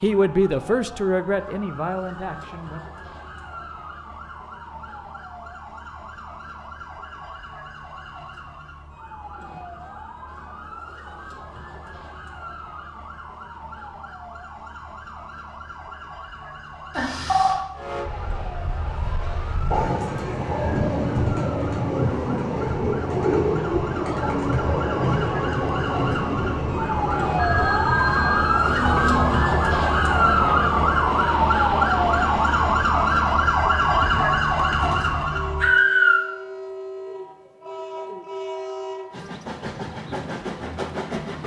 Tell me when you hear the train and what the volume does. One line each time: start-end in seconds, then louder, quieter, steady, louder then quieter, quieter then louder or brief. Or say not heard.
17.8-41.4 quieter.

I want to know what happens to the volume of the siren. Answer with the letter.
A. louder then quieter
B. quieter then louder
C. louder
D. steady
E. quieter
C.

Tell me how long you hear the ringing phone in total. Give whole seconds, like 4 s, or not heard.
2 s.